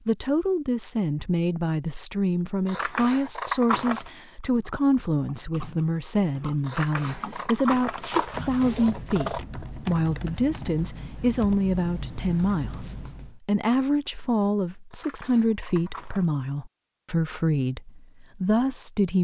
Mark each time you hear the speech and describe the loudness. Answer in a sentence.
The speech can be heard from 0.1 to 19.1 s, at a steady volume.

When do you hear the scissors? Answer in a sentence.
The scissors can be heard from 2.6 to 4.1 s, from 6.7 to 9.4 s and from 14.9 to 16.2 s.